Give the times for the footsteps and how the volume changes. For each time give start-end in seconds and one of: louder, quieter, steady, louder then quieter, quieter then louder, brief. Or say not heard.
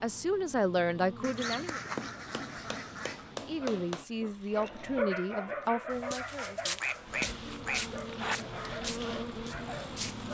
5.9-10.2 quieter.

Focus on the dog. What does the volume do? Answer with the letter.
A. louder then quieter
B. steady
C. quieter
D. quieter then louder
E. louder
C.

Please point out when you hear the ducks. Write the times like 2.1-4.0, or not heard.
1.2-3.3, 6.3-8.4.